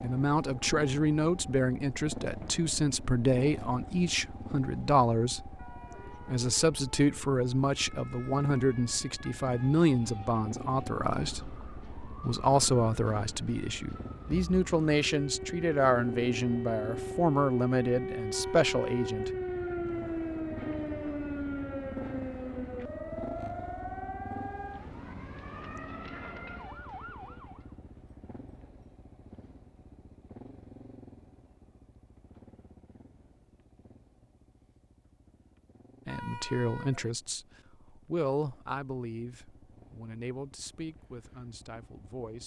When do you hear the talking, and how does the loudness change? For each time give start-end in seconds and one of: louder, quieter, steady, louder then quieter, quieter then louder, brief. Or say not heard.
0.0-19.3 steady
36.0-42.4 quieter.